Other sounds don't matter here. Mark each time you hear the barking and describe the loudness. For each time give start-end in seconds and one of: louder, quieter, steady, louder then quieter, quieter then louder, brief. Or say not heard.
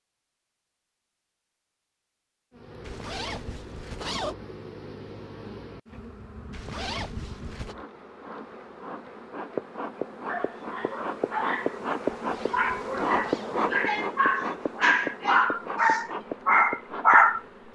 10.2-17.7 louder.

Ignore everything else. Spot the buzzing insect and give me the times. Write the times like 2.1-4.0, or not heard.
2.5-17.7.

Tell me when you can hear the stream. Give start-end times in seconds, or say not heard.
not heard.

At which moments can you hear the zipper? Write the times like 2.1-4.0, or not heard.
2.8-4.3, 6.5-7.8, 12.2-13.7.